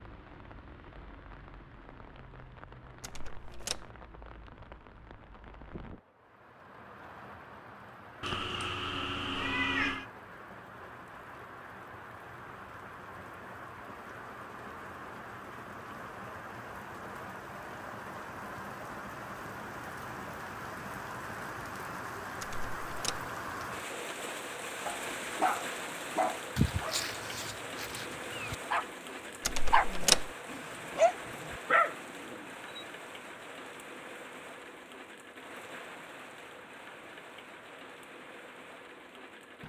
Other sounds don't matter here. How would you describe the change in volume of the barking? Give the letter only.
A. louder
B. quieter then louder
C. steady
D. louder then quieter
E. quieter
B.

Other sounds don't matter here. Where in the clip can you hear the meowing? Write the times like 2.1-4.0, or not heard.
8.2-10.1.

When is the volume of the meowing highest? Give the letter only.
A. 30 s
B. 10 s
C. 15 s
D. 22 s
B.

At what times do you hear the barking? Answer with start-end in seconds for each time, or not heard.
24.9-28.9, 29.7-32.8.